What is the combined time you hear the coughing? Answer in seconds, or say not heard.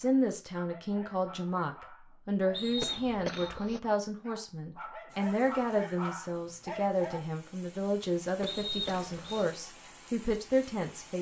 2 s.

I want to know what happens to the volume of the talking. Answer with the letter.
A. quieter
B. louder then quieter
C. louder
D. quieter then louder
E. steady
E.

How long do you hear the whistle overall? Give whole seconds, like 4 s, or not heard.
2 s.